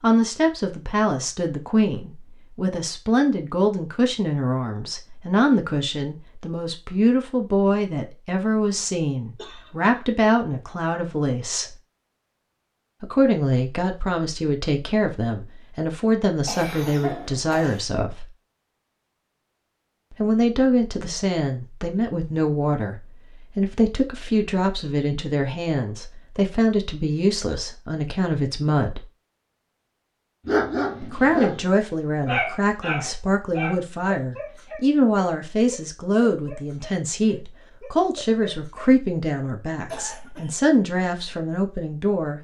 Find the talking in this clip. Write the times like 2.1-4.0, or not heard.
0.0-11.7, 13.0-18.3, 20.1-29.1, 31.0-42.3.